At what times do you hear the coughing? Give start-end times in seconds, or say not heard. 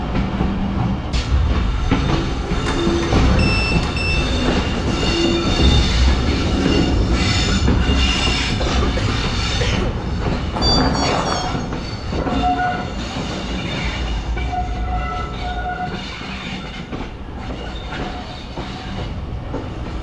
8.6-10.0.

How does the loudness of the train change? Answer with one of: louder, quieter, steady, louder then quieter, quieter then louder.
quieter.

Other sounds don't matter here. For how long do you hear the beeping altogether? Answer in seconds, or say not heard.
3 s.